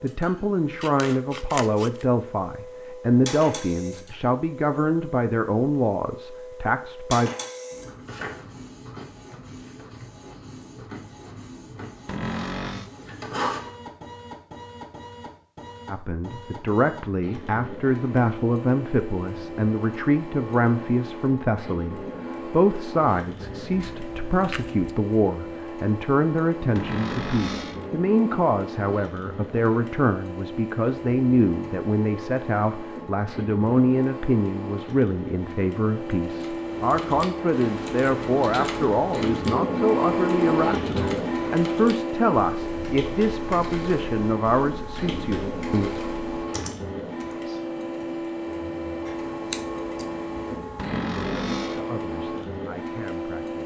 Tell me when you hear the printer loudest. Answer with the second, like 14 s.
40 s.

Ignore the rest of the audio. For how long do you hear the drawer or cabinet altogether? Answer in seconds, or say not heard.
3 s.